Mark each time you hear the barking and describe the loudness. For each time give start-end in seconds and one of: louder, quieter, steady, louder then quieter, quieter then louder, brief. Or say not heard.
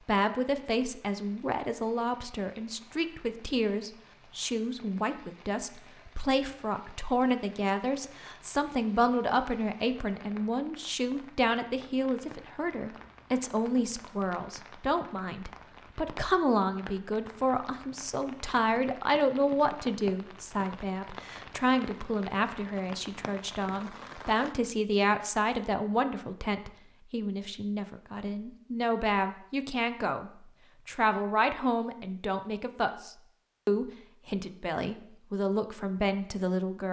not heard.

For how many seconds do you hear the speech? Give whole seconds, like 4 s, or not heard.
37 s.